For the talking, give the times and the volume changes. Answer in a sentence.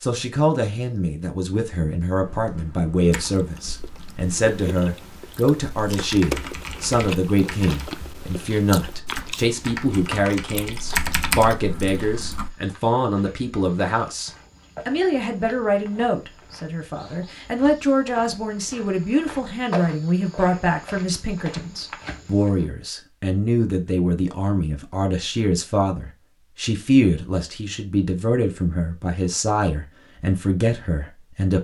You can hear the talking from 0.0 to 31.5 s, at a steady volume.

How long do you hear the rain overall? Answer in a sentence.
The rain can't be heard in this clip.